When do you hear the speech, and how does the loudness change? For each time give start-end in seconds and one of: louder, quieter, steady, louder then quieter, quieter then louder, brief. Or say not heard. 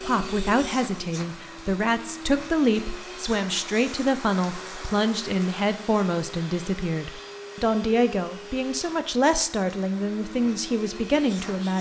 0.1-11.7 steady.